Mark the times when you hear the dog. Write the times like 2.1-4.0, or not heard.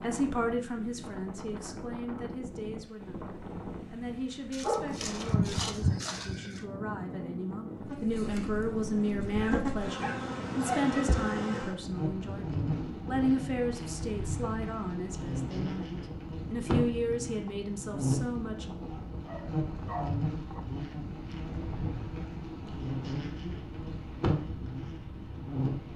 4.5-6.6, 9.4-11.2, 18.9-20.6.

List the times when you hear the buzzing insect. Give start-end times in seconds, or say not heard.
7.8-25.9.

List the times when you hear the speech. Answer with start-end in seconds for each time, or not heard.
0.0-18.6.